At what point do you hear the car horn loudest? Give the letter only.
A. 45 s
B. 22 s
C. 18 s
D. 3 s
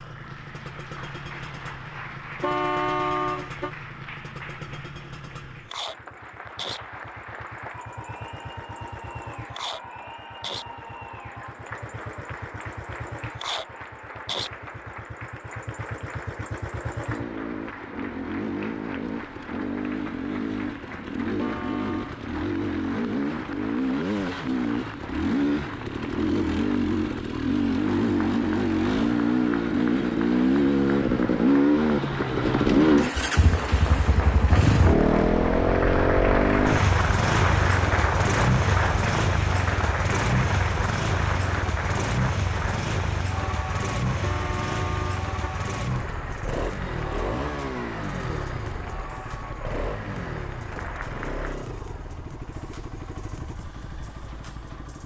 D.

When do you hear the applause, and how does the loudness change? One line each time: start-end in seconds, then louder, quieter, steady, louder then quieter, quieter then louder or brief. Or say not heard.
0.0-51.5 louder then quieter.